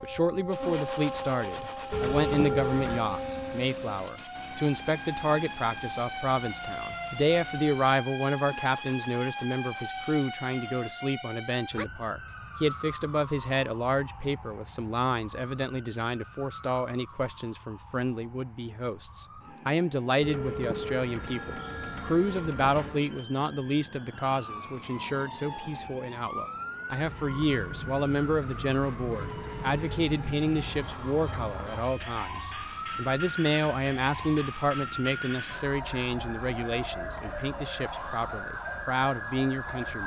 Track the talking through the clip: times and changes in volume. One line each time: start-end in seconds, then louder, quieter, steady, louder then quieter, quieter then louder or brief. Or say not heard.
0.0-40.0 steady.